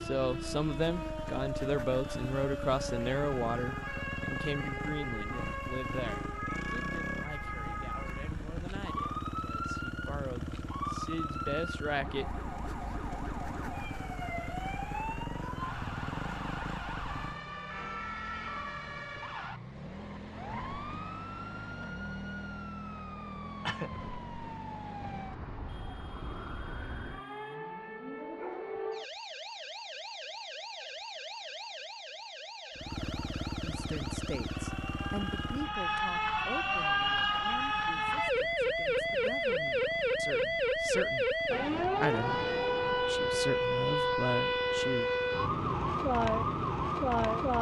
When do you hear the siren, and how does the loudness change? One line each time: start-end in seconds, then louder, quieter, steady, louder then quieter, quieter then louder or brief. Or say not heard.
0.0-47.5 louder.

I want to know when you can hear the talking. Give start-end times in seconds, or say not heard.
0.0-12.2, 33.6-45.1.